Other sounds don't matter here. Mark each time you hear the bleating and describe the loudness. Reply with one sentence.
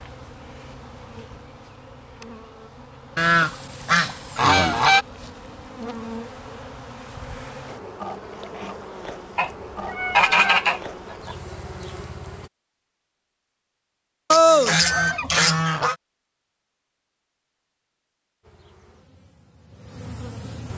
You can't hear the bleating here.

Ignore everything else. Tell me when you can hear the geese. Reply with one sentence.
The geese can be heard from 3.1 to 5.0 s, from 9.3 to 11.3 s and from 14.3 to 15.9 s.